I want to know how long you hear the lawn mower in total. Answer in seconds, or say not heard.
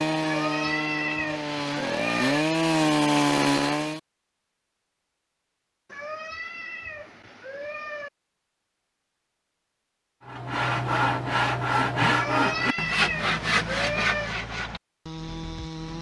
not heard.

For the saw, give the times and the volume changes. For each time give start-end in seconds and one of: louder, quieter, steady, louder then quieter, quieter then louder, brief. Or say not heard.
0.0-4.0 louder
10.2-15.9 quieter.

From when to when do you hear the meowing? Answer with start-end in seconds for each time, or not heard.
0.2-2.5, 5.8-8.1, 12.1-14.3.